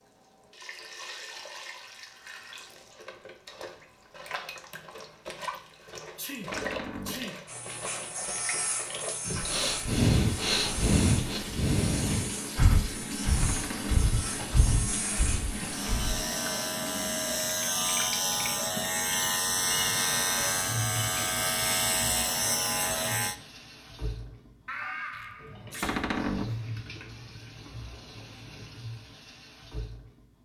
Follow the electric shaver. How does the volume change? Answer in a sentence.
The loudness of the electric shaver goes up.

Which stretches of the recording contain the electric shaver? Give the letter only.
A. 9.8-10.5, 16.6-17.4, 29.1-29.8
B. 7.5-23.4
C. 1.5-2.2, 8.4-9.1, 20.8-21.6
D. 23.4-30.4
B.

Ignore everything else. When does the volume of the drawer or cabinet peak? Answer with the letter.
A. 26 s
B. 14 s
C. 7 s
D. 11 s
A.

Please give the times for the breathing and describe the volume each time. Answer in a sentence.
You can hear the breathing from 9.2 to 16.2 s, getting quieter.